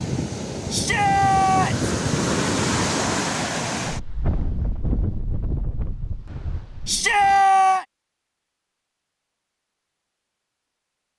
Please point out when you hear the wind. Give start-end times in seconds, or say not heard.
0.0-7.5.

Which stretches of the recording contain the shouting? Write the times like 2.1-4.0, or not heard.
0.7-1.9, 6.8-7.8.